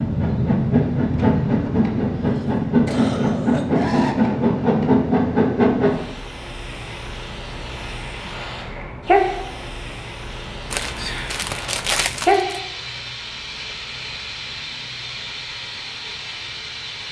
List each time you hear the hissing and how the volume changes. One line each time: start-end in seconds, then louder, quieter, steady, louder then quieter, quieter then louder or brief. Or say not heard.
0.0-17.0 quieter.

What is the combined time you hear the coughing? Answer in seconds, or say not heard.
2 s.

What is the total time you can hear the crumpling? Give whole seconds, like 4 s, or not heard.
2 s.